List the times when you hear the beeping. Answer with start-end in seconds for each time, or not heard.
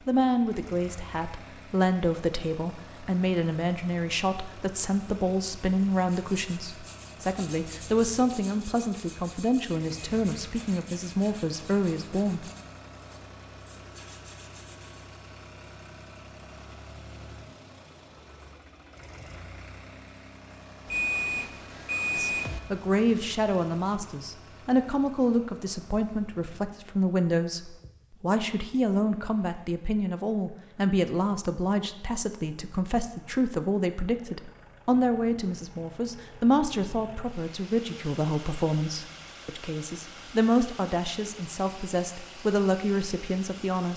20.9-22.6.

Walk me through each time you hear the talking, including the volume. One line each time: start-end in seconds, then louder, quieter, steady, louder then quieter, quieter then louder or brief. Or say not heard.
0.1-12.4 steady
22.1-43.9 steady.